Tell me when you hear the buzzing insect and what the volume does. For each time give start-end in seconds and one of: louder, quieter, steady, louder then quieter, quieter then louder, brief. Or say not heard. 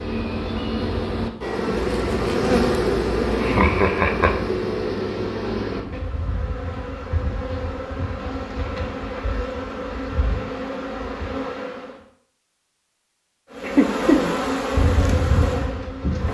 0.0-12.0 quieter
13.5-16.2 brief.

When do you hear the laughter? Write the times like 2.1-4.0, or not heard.
3.4-4.3, 13.6-14.2.